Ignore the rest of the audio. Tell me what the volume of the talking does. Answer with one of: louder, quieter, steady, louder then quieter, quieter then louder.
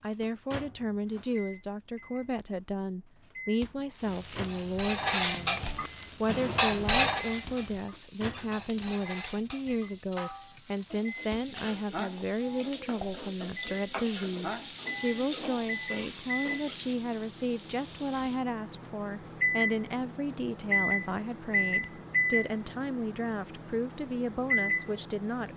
steady.